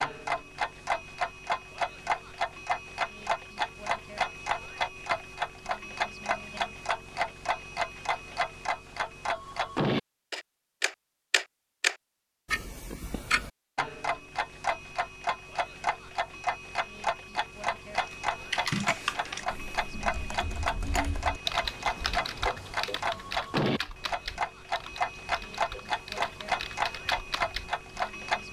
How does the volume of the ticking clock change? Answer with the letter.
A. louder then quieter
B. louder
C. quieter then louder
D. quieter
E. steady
E.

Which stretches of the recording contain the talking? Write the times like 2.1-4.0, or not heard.
not heard.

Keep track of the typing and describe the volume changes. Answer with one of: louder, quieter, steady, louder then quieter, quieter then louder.
quieter.